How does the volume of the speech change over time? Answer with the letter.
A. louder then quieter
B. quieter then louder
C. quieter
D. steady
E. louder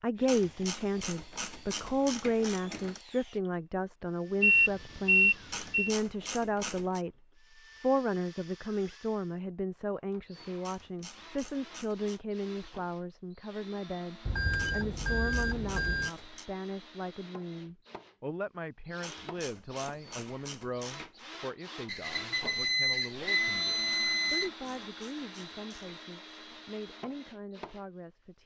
C.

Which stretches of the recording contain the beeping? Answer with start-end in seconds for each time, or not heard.
4.4-5.9, 14.2-16.1, 21.9-24.5.